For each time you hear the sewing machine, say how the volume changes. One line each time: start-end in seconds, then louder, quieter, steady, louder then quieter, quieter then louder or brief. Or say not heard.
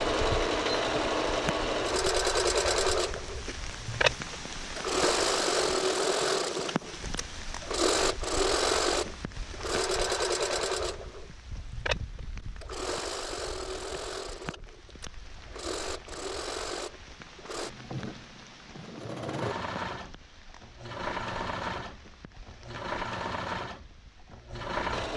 0.0-25.1 quieter.